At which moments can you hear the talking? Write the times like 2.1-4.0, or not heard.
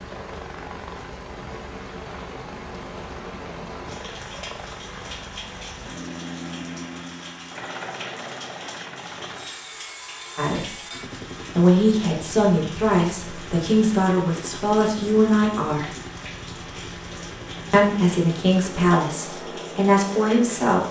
10.3-10.8, 11.6-15.9, 17.7-20.8.